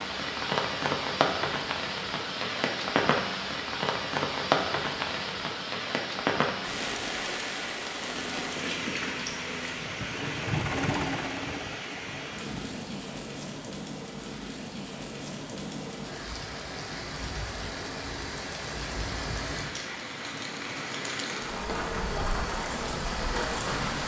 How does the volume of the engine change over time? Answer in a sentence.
The volume of the engine goes up, then down.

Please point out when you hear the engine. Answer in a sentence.
The engine can be heard from 7.9 to 12.8 s.